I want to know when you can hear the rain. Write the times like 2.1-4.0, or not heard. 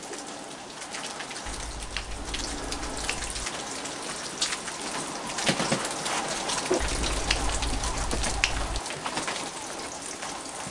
0.0-10.6.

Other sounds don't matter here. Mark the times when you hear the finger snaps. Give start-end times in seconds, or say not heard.
1.4-3.5, 6.8-8.8.